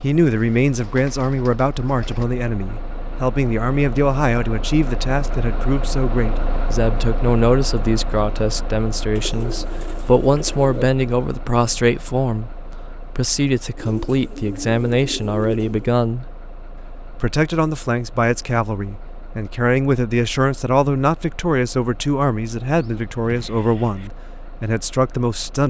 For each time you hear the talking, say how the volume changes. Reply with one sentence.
The talking can be heard from 0.0 to 16.2 s, at a steady volume; and from 17.1 to 25.6 s, at a steady volume.